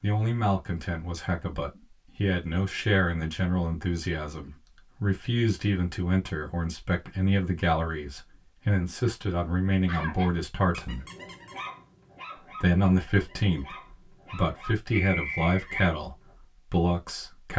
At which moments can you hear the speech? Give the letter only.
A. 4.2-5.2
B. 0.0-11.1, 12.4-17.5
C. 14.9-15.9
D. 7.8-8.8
B.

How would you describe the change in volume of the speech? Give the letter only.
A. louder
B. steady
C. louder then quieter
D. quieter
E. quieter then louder
B.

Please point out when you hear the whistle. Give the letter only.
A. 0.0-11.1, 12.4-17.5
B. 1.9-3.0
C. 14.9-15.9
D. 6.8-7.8
C.